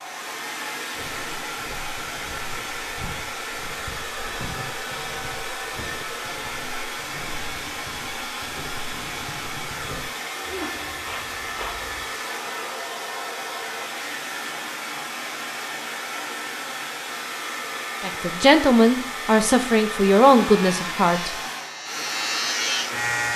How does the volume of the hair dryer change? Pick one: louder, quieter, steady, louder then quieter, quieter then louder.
steady.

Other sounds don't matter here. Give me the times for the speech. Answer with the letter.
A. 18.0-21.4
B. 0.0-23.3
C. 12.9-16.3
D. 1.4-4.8
A.